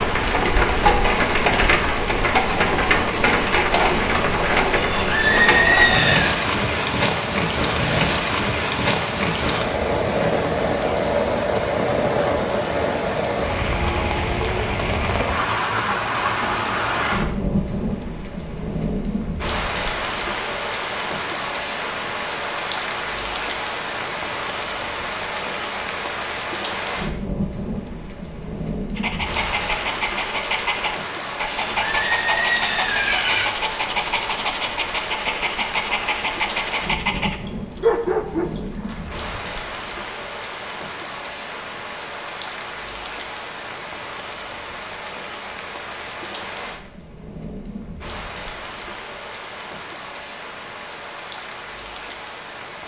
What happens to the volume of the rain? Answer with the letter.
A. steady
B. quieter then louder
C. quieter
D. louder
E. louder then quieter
C.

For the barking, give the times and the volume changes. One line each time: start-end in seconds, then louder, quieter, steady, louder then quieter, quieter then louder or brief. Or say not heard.
28.9-39.3 steady.